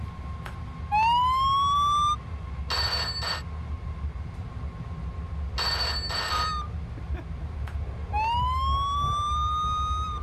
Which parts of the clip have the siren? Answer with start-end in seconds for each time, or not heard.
0.0-2.1, 6.3-10.1.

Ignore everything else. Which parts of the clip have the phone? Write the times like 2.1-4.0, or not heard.
2.6-3.5, 5.5-6.6.